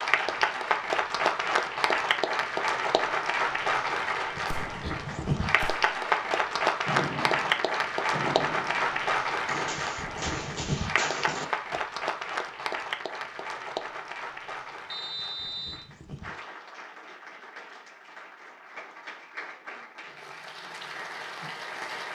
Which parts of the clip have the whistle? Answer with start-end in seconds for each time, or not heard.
14.9-15.8.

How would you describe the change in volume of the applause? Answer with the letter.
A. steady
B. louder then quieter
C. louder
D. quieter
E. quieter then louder
D.